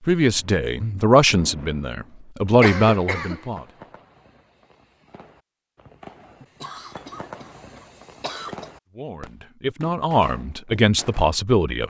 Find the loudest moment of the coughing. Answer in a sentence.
The volume of the coughing peaks at 3 seconds.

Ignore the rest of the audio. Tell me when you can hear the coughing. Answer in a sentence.
You can hear the coughing from 2.6 to 3.5 s and from 6.4 to 8.7 s.